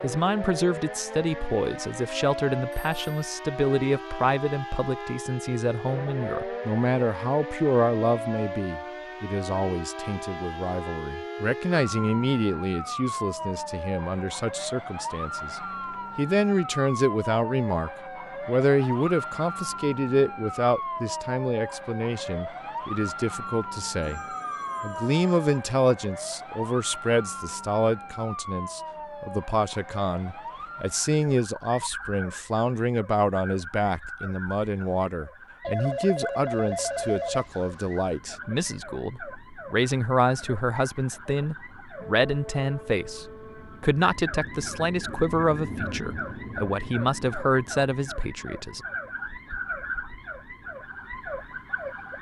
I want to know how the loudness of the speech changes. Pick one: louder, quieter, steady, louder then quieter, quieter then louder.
steady.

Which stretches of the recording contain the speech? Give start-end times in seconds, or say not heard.
0.0-24.2, 24.8-48.8.